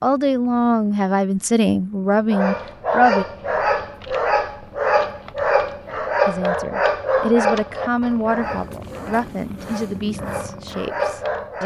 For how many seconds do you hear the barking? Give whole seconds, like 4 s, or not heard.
9 s.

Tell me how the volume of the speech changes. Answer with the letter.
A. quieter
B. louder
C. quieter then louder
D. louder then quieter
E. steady
A.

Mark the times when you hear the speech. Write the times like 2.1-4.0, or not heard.
0.0-3.2, 6.2-11.6.